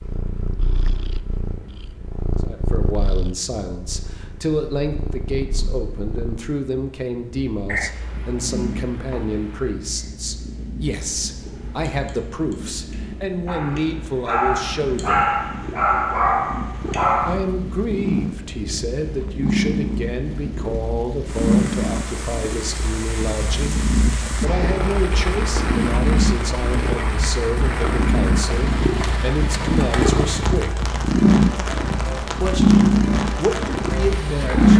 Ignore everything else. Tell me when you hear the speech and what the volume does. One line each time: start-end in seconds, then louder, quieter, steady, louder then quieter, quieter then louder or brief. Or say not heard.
2.4-15.4 steady
17.2-30.9 steady
32.2-34.7 brief.